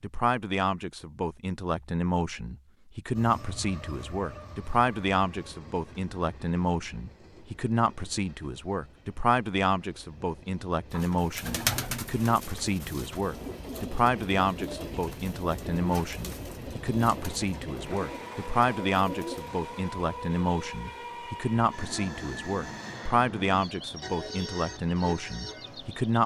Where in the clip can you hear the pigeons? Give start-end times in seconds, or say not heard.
10.9-19.5.